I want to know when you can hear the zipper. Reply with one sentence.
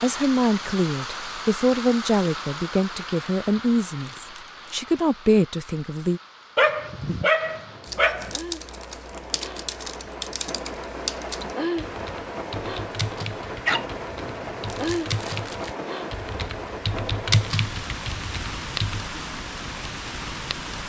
The zipper can't be heard in this clip.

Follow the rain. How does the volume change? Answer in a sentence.
The loudness of the rain goes down, then up.